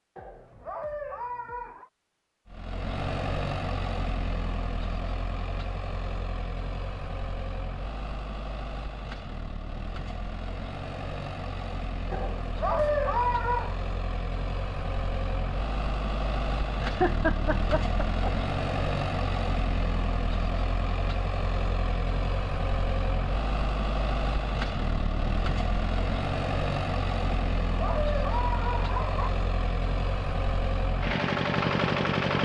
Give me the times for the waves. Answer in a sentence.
You can't hear the waves here.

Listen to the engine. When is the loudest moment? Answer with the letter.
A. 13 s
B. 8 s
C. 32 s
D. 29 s
C.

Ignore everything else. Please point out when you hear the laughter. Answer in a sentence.
You can hear the laughter from 16.8 to 18.4 s.